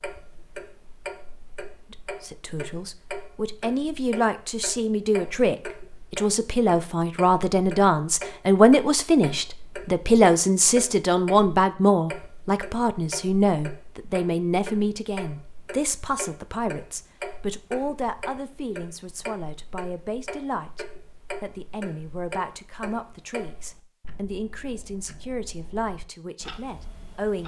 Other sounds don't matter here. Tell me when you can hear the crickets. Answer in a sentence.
The crickets can't be heard in this clip.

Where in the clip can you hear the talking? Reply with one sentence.
The talking can be heard from 1.9 to 27.4 s.